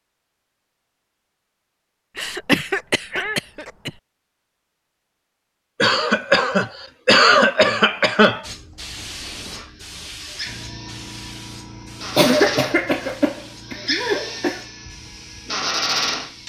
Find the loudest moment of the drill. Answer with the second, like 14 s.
16 s.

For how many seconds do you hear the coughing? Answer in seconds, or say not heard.
7 s.